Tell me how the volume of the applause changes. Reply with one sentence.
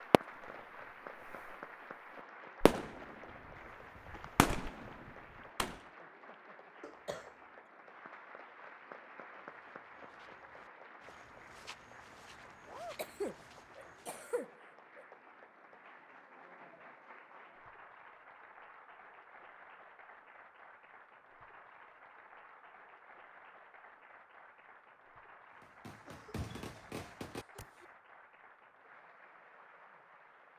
The volume of the applause goes down.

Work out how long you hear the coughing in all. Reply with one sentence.
The coughing can be heard for 5 seconds in total.